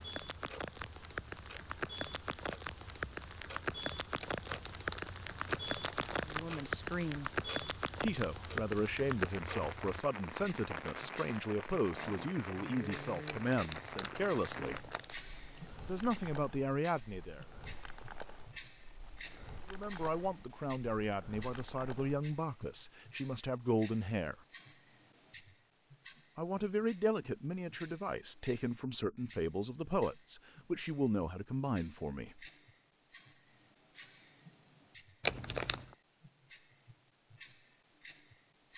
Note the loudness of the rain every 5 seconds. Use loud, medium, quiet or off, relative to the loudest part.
loud, loud, medium, quiet, quiet, off, off, off.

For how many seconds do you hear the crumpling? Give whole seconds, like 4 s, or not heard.
5 s.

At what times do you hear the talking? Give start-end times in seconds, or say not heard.
6.2-7.4, 8.0-14.8, 15.8-17.4, 19.7-24.4, 26.4-32.5.